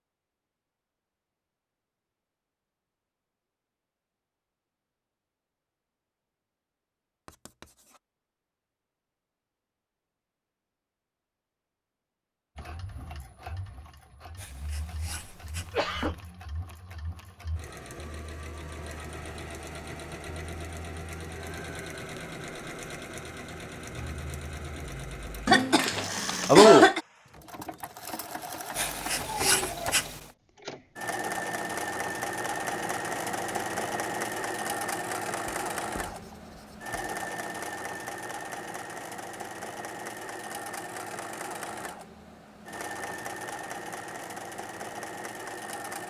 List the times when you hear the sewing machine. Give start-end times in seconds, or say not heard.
12.6-46.0.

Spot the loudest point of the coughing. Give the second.
27 s.